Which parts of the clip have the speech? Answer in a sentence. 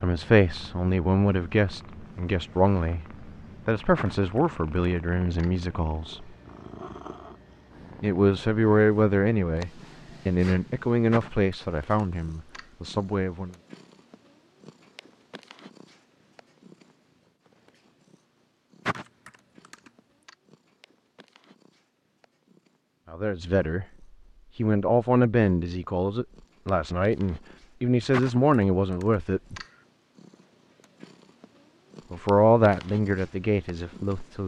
The speech can be heard from 0.0 to 6.3 s, from 8.0 to 13.6 s, from 23.1 to 23.9 s, from 24.6 to 29.6 s and from 32.1 to 34.4 s.